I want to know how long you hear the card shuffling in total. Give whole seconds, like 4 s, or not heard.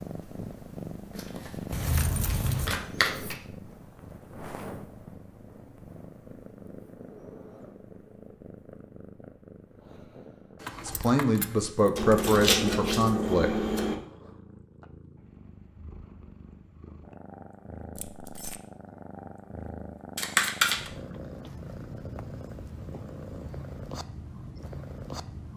5 s.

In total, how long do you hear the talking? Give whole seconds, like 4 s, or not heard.
3 s.